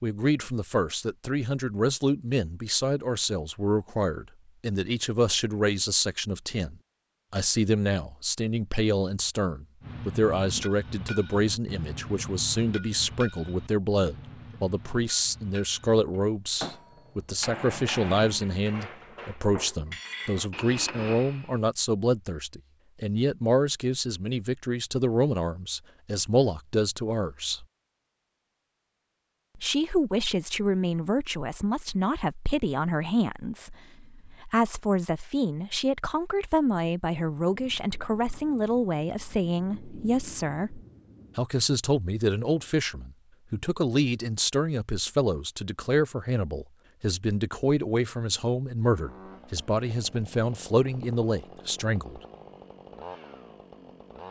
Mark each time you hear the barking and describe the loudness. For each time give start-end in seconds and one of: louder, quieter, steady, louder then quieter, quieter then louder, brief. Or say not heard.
not heard.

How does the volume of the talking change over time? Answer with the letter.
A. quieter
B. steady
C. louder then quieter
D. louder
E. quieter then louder
B.